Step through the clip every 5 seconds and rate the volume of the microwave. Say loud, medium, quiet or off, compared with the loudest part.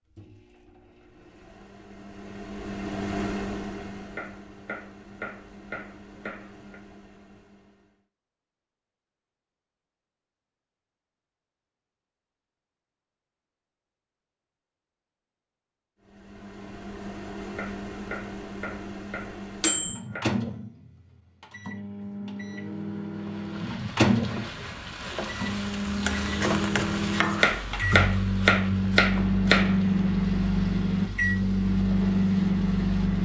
quiet, quiet, off, medium, medium, loud, loud.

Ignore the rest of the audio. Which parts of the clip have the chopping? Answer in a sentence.
The chopping can be heard from 4.2 to 6.8 s, from 17.6 to 20.2 s and from 27.4 to 29.8 s.